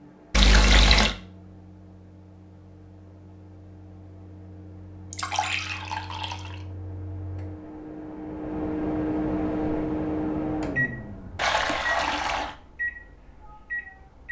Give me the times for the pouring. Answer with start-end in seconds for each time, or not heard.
0.3-1.1, 5.1-6.5, 11.3-12.6.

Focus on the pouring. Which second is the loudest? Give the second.
1 s.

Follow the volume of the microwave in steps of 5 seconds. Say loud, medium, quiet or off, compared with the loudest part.
quiet, loud, loud.